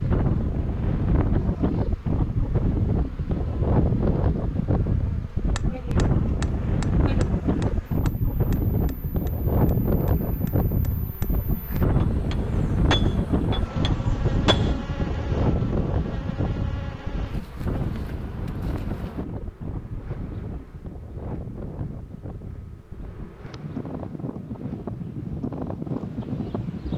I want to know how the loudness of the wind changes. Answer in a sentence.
The loudness of the wind goes down.